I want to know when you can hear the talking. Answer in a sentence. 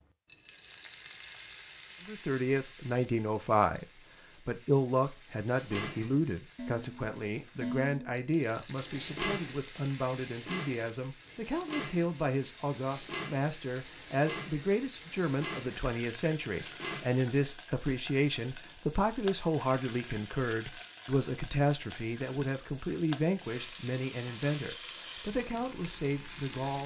You can hear the talking from 2.0 to 3.9 s and from 4.5 to 26.8 s.